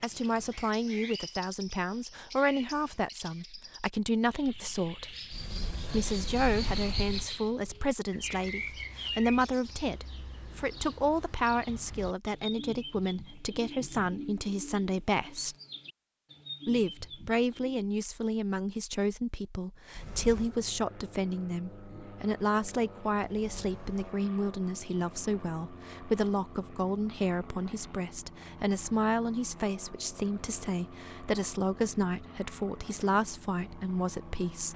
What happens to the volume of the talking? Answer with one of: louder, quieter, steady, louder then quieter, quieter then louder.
steady.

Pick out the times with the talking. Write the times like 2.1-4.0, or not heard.
0.0-5.1, 5.8-15.6, 16.6-34.7.